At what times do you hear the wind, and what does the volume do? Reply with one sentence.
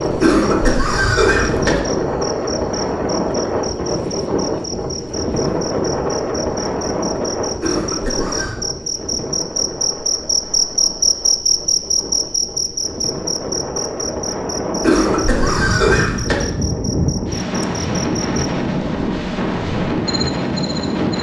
The wind can be heard from 0.0 to 21.1 s, getting quieter then louder.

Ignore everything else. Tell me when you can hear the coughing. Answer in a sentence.
The coughing can be heard from 0.2 to 1.8 s, from 7.6 to 8.6 s and from 14.8 to 16.4 s.